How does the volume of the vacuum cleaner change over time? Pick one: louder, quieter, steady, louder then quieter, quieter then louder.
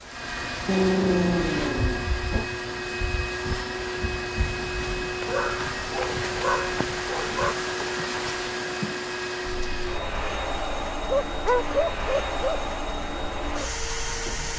steady.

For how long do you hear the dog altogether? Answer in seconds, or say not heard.
6 s.